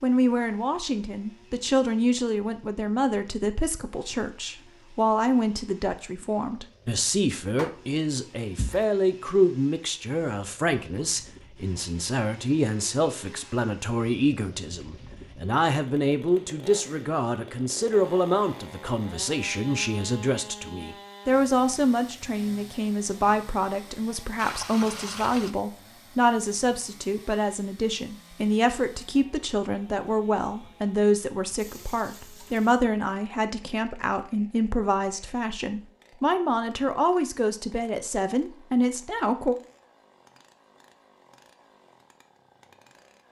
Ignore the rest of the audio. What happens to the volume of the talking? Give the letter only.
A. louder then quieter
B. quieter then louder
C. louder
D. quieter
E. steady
E.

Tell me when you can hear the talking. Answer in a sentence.
You can hear the talking from 0.0 to 39.5 s.